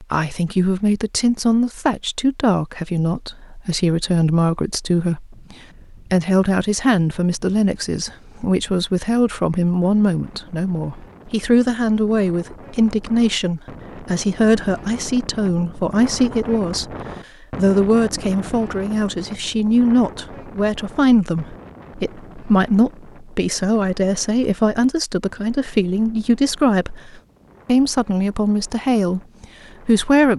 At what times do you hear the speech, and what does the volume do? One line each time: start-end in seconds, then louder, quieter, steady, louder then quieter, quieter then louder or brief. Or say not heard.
0.0-16.9 steady
17.6-30.3 steady.